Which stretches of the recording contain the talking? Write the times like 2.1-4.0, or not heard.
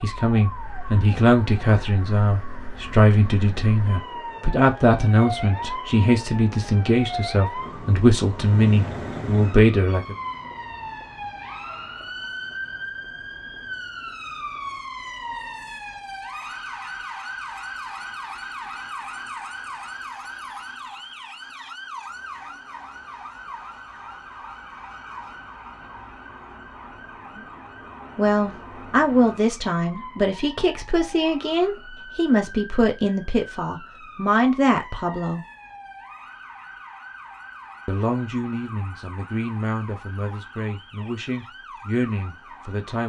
0.0-10.2, 28.1-35.4, 37.9-43.0.